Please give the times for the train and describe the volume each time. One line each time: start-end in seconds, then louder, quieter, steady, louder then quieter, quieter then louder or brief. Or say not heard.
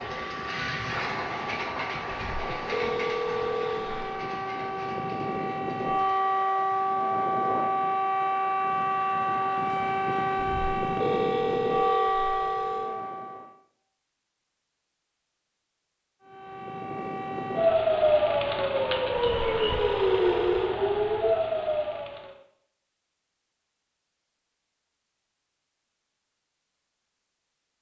0.0-6.5 quieter.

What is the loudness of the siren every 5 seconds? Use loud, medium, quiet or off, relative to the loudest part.
medium, loud, loud, loud, loud, off.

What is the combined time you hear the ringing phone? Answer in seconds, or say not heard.
6 s.